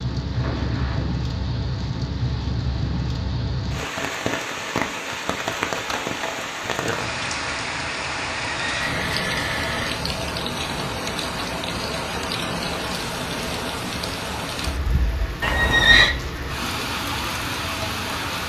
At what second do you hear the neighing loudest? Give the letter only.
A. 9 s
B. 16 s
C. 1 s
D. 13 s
B.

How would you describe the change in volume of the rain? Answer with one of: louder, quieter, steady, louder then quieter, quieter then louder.
steady.